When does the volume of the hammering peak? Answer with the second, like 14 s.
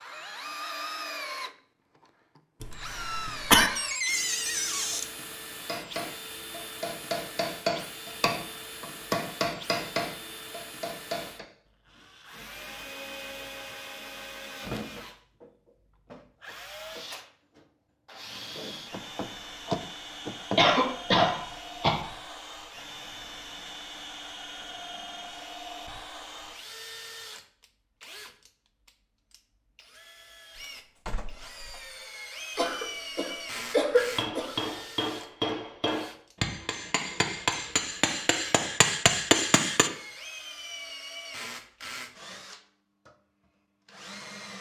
39 s.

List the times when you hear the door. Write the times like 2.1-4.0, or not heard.
3.8-5.1, 18.9-20.6, 30.6-31.9.